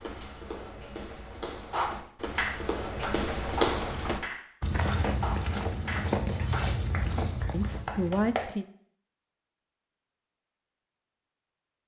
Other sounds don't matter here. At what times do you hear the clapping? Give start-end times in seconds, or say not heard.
1.7-8.5.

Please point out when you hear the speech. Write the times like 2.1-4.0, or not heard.
7.0-8.7.